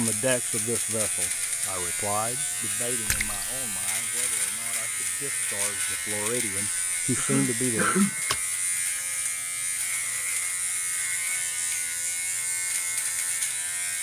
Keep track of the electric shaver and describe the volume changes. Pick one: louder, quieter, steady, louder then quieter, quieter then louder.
steady.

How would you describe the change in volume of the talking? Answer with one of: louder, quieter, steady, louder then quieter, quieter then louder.
quieter then louder.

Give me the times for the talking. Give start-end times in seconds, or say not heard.
0.0-8.0.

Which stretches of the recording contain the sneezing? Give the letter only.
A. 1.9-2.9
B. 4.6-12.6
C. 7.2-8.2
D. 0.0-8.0
C.